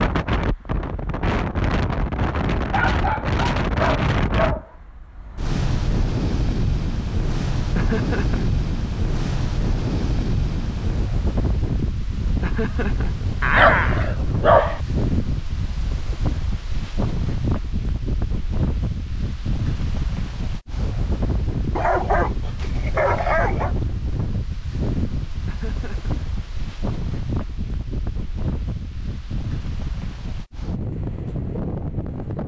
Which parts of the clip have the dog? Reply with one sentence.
The dog can be heard from 2.5 to 4.7 s, from 13.4 to 14.8 s and from 21.8 to 23.8 s.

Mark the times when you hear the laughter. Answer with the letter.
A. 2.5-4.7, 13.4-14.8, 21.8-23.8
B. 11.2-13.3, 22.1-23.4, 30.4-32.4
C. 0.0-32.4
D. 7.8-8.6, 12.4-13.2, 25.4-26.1
D.